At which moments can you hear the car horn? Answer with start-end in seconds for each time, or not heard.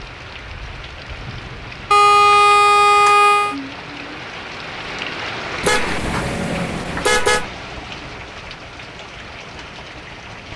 1.9-3.5, 5.6-7.5.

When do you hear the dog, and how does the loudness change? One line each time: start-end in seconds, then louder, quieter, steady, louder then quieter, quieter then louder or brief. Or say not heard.
not heard.